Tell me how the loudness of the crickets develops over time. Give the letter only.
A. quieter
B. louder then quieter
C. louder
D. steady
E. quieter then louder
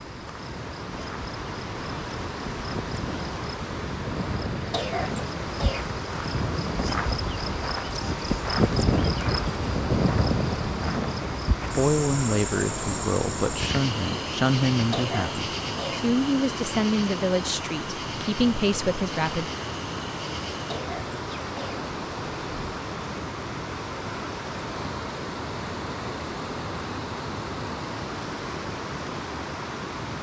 B.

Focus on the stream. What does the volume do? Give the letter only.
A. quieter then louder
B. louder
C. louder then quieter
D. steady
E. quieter
D.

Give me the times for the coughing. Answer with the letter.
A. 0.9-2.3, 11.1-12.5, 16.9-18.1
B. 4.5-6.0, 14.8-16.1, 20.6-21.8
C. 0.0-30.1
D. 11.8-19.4
B.